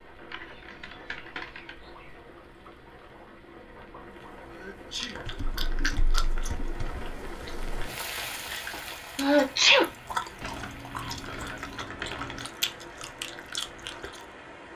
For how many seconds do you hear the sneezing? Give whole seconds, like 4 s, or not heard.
2 s.